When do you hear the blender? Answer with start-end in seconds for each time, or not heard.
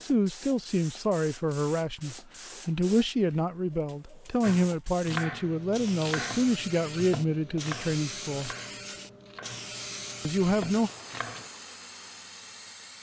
not heard.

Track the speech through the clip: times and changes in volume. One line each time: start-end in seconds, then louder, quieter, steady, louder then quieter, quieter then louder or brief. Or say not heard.
0.0-8.5 steady
10.2-10.9 brief.